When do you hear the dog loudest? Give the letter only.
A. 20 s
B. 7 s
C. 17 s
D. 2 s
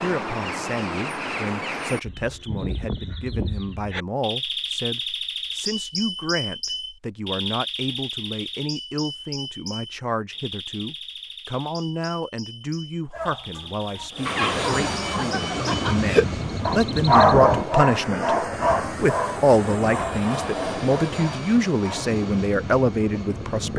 C.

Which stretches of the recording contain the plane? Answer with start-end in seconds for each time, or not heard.
14.1-23.7.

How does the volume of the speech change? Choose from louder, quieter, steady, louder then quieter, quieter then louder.
louder.